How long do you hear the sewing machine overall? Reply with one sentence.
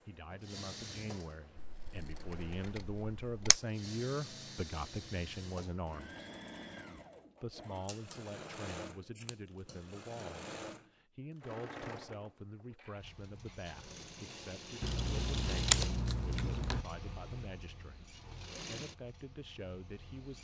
You can hear the sewing machine for 20 seconds altogether.